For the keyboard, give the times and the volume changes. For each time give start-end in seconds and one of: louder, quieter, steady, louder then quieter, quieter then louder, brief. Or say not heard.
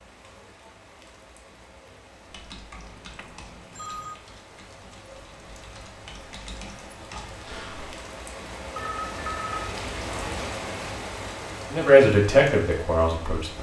2.3-7.9 quieter then louder.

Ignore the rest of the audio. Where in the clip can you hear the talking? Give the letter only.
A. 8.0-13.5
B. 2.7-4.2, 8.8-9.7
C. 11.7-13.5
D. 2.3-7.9
C.